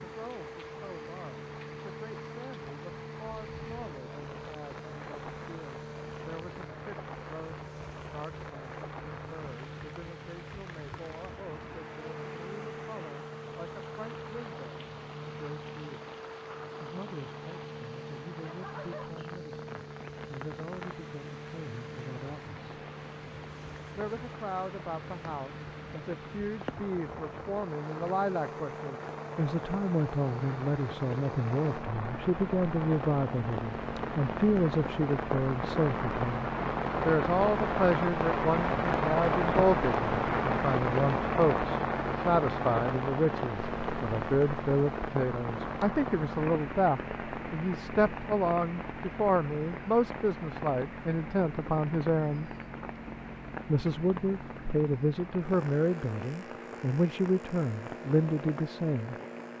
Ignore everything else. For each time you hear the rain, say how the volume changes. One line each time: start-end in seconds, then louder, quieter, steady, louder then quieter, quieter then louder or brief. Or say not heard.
0.0-59.5 louder then quieter.